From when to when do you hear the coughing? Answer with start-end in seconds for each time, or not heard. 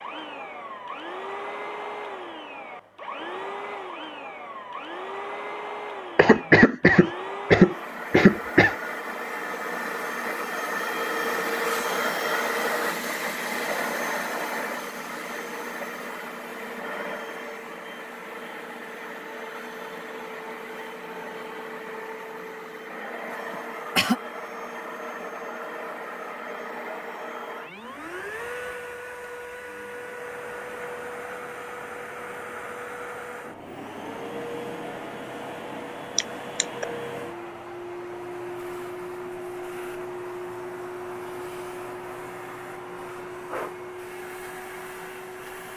6.2-8.8, 23.5-24.2, 36.1-36.9.